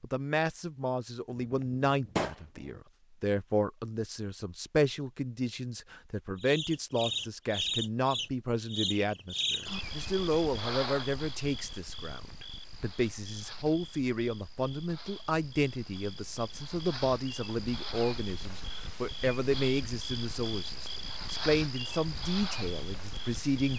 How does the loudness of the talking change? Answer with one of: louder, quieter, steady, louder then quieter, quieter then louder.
steady.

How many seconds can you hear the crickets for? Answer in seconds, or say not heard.
17 s.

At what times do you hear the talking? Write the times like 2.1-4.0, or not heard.
0.0-23.7.